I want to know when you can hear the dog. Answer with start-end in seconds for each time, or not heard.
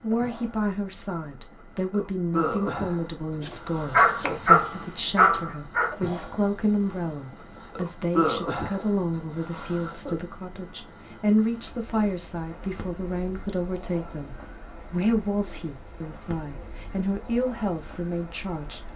3.6-6.0.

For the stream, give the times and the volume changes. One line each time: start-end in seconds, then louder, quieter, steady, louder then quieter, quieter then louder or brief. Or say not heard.
not heard.